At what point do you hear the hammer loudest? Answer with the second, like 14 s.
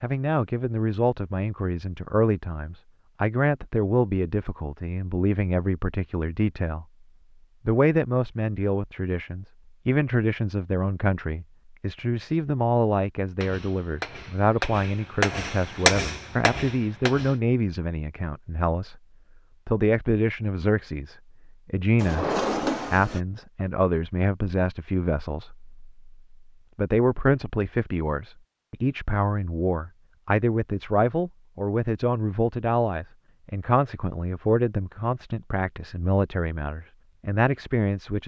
16 s.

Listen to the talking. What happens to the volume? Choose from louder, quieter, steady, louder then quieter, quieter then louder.
steady.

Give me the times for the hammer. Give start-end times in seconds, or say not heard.
13.4-17.4.